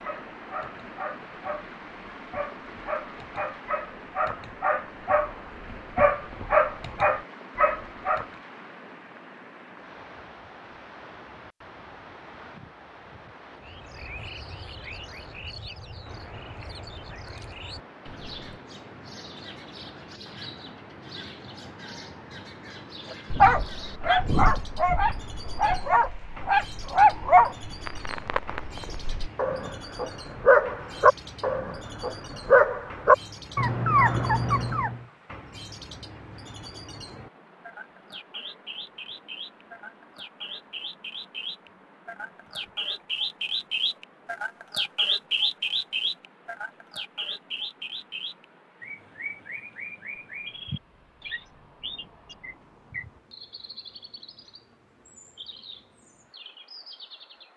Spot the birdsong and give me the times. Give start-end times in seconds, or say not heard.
13.6-57.5.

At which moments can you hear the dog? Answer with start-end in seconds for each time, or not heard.
0.0-8.2, 23.1-35.0.